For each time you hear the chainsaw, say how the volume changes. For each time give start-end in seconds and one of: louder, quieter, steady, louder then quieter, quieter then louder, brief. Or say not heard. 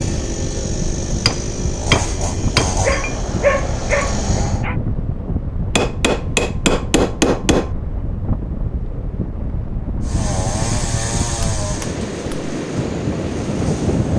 0.0-4.7 steady
10.0-14.1 quieter.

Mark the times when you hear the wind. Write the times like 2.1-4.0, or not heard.
0.0-14.1.